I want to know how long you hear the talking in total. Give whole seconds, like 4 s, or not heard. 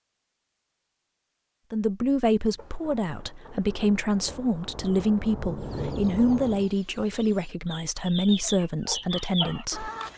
8 s.